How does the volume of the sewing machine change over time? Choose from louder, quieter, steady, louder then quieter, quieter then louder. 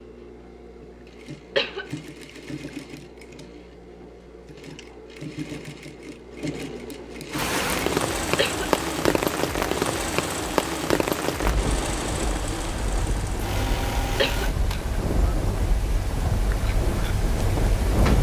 louder.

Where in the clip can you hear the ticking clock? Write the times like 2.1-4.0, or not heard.
not heard.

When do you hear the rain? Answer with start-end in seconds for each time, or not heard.
7.3-18.1.